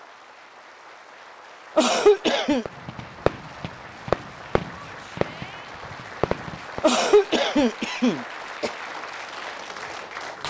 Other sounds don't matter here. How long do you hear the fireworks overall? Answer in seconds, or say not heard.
4 s.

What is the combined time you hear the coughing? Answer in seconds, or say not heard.
3 s.